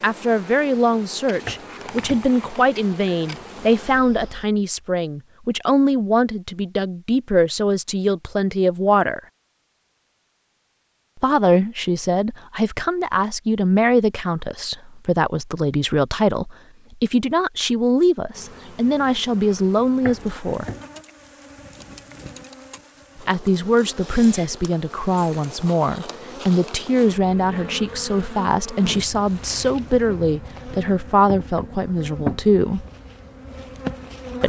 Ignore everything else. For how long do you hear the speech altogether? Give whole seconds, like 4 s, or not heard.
28 s.